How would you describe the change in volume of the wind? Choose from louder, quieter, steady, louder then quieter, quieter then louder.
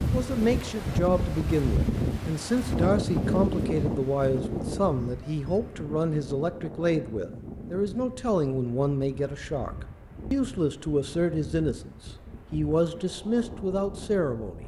quieter.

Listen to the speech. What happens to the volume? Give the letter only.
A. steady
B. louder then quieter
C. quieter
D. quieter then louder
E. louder
A.